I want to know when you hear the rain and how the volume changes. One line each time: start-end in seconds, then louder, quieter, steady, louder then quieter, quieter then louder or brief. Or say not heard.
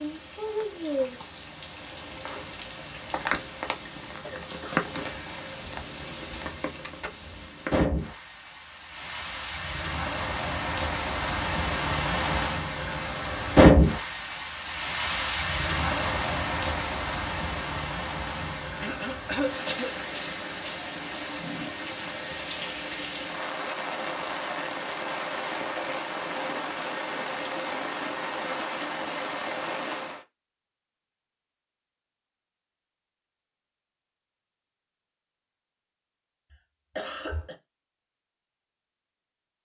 0.0-30.2 louder then quieter.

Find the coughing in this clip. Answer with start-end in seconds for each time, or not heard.
4.2-4.8, 18.8-19.9, 36.5-37.5.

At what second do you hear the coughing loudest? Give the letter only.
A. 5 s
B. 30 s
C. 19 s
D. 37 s
C.